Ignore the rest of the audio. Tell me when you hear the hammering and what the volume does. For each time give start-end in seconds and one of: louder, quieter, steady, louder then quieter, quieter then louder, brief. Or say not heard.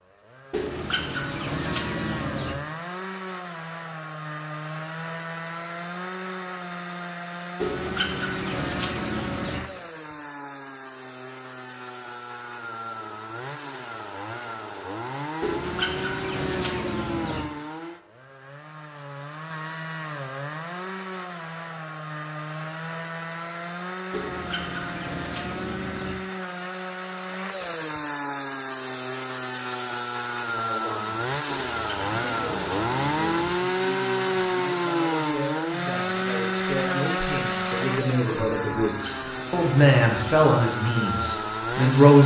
not heard.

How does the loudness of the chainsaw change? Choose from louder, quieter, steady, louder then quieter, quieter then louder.
louder.